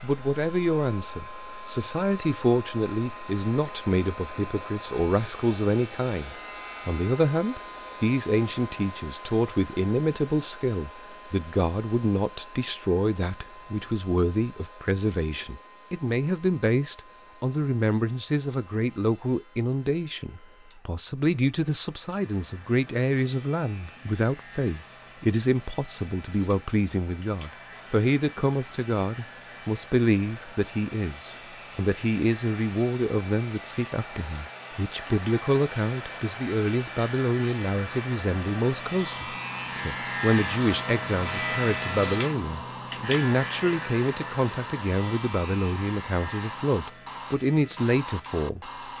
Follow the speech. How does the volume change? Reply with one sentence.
The volume of the speech stays about the same.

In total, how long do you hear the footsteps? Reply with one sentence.
You can't hear the footsteps here.